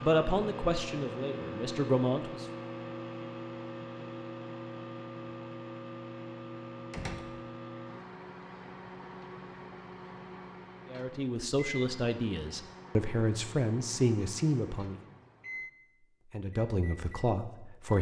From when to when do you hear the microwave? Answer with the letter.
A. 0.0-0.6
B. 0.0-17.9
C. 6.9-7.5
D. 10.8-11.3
B.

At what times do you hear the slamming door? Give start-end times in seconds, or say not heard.
6.9-7.5.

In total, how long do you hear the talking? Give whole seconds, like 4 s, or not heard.
8 s.